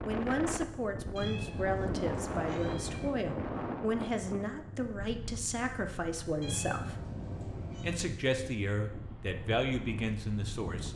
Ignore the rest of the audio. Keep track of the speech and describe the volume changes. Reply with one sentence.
The loudness of the speech stays about the same.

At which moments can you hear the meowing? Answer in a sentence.
You can hear the meowing from 1.1 to 3.1 s and from 6.4 to 8.0 s.